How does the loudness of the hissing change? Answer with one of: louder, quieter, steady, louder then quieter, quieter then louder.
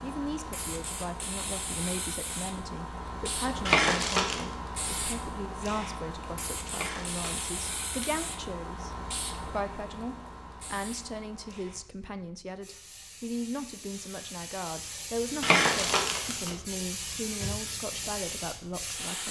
quieter then louder.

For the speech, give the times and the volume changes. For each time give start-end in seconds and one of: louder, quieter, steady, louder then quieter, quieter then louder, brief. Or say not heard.
0.0-19.2 steady.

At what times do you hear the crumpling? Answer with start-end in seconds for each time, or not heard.
3.6-4.4, 6.7-8.2, 15.4-16.6.